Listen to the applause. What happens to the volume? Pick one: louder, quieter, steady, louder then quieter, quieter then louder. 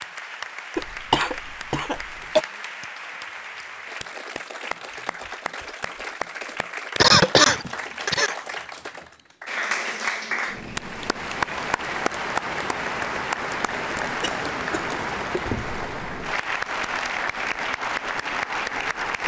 louder.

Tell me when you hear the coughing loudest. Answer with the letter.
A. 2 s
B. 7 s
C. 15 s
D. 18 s
B.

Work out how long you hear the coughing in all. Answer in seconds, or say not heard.
4 s.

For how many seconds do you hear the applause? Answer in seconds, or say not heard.
19 s.